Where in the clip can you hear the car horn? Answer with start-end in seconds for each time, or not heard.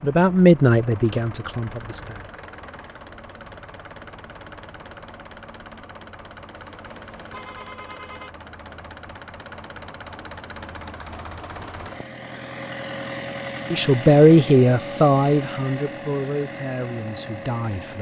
6.6-8.3.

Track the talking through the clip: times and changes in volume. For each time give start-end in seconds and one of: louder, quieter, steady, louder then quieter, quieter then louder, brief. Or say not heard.
0.0-2.2 brief
13.7-17.9 quieter.